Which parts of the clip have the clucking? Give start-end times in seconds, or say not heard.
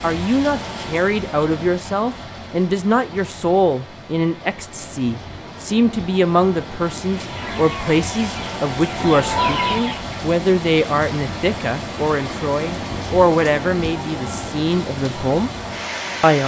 7.2-10.2.